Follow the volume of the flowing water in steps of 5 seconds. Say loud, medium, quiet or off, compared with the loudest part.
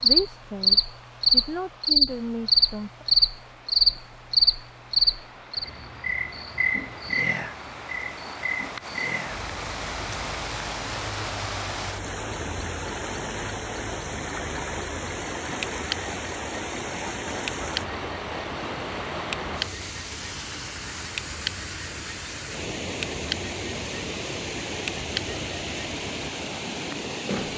quiet, medium, loud, loud, loud, loud.